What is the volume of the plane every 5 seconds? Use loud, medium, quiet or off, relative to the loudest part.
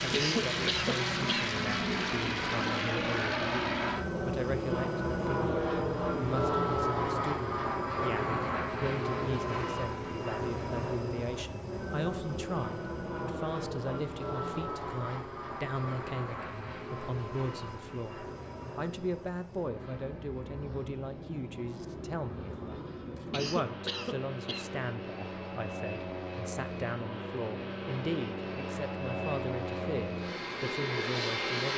loud, loud, medium, medium, medium, medium, loud.